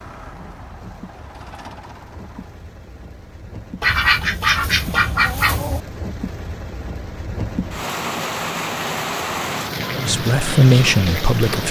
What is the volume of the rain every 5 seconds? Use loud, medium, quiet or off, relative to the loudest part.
quiet, loud, loud.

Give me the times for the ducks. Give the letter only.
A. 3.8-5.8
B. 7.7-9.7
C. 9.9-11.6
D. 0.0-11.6
A.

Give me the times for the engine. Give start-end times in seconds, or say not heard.
0.0-2.6.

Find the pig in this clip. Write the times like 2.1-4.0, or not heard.
not heard.